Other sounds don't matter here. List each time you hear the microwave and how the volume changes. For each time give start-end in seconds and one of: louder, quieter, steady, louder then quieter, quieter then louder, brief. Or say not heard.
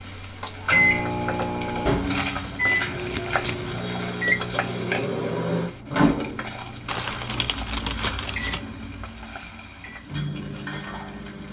0.0-11.4 quieter.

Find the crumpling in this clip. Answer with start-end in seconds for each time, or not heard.
3.0-3.8, 6.8-8.6.